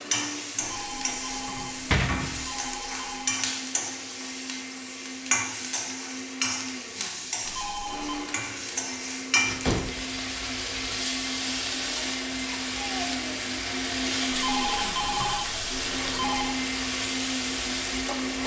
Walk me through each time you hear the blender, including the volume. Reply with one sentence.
The blender can be heard from 0.0 to 18.4 s, getting louder.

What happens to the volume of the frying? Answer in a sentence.
The volume of the frying stays about the same.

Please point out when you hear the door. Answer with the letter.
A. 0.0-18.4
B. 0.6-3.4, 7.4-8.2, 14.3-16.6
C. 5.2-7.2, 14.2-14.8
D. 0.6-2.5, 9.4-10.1
D.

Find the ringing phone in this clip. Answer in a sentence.
You can hear the ringing phone from 0.6 to 3.4 s, from 7.4 to 8.2 s and from 14.3 to 16.6 s.